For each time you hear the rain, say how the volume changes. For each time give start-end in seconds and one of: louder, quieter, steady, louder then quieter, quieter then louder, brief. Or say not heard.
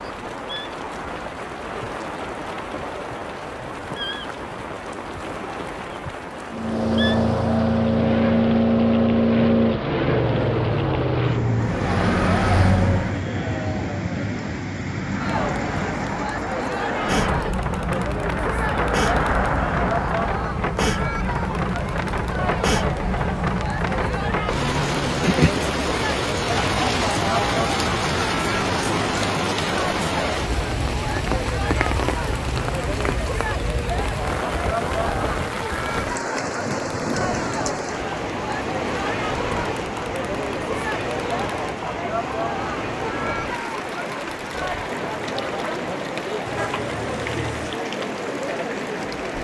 0.0-49.3 louder then quieter.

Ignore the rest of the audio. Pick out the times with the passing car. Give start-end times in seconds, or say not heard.
6.5-13.2, 14.8-20.3.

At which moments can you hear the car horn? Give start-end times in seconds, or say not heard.
46.5-47.8.